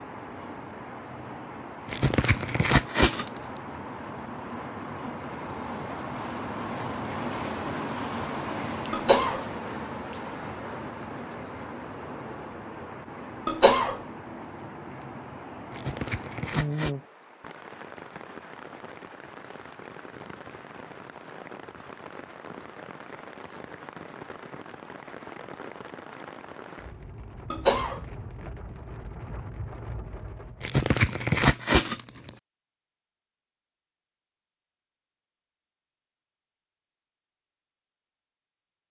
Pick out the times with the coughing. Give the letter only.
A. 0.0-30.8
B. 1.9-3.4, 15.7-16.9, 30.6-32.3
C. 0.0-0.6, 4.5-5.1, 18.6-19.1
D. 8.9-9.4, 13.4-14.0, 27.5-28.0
D.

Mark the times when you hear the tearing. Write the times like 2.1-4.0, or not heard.
1.9-3.4, 15.7-16.9, 30.6-32.3.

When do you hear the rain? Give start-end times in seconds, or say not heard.
0.0-30.8.